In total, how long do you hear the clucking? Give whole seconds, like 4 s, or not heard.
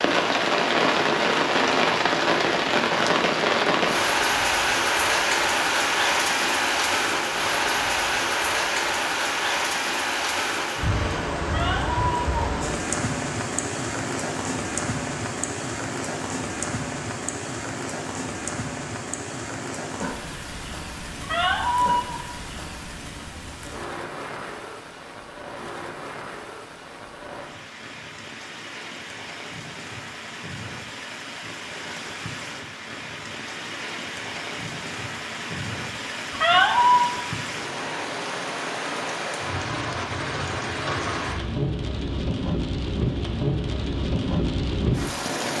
not heard.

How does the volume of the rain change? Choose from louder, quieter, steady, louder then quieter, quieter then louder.
quieter then louder.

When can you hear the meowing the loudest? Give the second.
37 s.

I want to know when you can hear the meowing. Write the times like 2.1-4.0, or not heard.
11.4-12.3, 21.2-22.1, 36.3-37.1.